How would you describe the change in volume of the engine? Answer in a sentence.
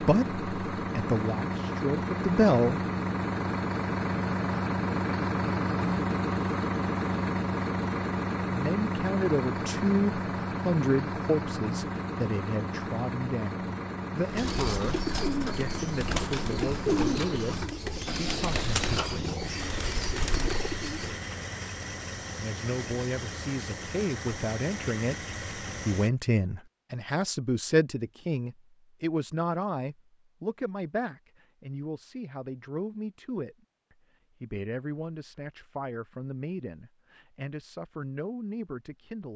The loudness of the engine goes down.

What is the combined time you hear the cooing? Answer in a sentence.
The cooing can be heard for 7 seconds in total.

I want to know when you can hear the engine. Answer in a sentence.
The engine can be heard from 0.0 to 26.1 s.